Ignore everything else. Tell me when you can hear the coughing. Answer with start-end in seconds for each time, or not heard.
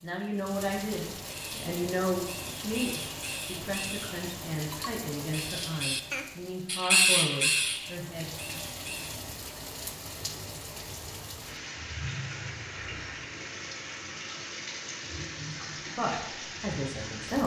not heard.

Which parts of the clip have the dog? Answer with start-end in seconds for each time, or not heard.
not heard.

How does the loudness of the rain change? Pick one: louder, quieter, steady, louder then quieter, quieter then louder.
steady.